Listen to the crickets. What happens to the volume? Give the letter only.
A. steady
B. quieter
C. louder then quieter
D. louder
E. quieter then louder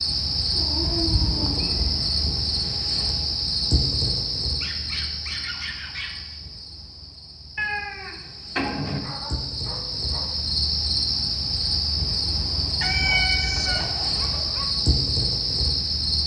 E.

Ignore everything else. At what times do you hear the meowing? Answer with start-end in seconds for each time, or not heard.
0.9-2.3, 7.5-9.0, 12.8-13.9.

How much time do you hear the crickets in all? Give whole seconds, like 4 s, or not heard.
16 s.